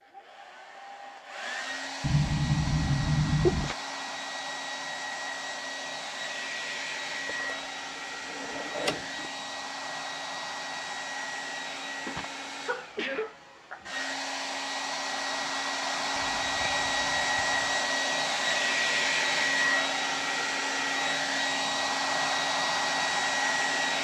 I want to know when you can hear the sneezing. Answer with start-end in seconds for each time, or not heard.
2.0-3.8, 11.9-13.8, 16.1-17.8.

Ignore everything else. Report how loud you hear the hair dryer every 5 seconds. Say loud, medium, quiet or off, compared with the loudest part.
medium, medium, medium, loud, loud.